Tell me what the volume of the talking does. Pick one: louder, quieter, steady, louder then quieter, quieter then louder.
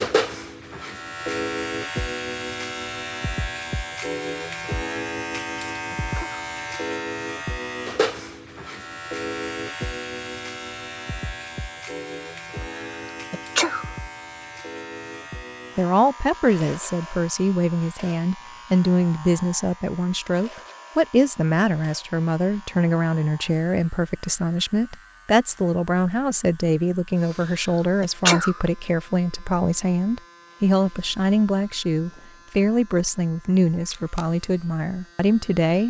steady.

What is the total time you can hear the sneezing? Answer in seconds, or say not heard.
2 s.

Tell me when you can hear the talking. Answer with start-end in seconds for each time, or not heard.
15.8-35.8.